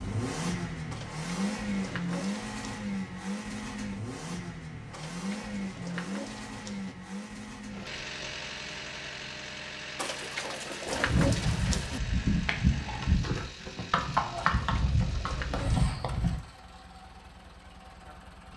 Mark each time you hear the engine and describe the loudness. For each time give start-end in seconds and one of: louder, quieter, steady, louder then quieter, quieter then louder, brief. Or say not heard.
0.0-18.5 quieter.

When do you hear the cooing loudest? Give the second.
11 s.